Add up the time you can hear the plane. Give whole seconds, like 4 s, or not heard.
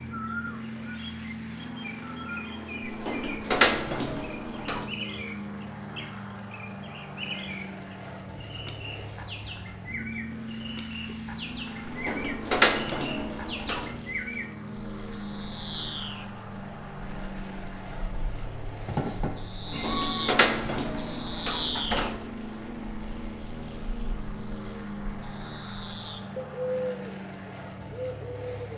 29 s.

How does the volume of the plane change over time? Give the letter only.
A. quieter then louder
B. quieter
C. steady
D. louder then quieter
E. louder
C.